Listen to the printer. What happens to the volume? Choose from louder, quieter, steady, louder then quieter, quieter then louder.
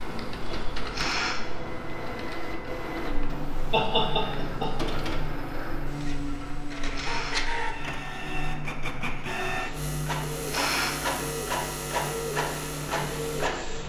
louder.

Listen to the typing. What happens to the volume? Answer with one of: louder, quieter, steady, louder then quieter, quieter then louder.
quieter.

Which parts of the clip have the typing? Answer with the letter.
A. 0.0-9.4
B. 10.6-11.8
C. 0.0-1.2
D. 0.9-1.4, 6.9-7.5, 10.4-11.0
A.